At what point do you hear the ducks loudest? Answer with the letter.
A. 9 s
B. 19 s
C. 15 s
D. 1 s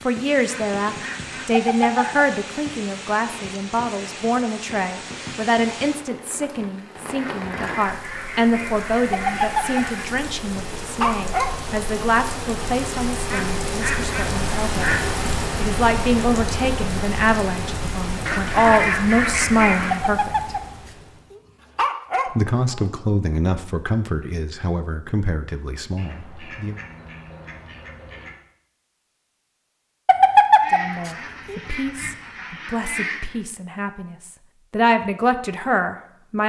B.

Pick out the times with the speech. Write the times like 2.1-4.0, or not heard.
0.0-14.9, 15.6-20.3, 22.4-26.8, 30.7-36.4.